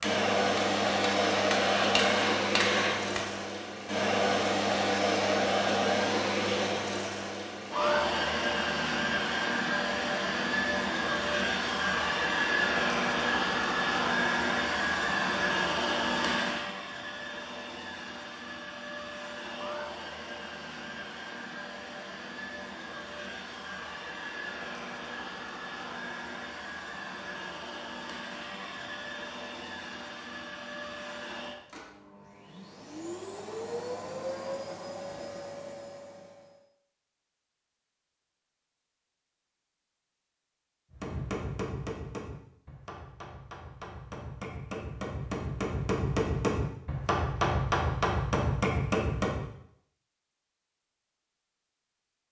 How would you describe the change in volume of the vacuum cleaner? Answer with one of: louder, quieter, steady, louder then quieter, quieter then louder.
quieter.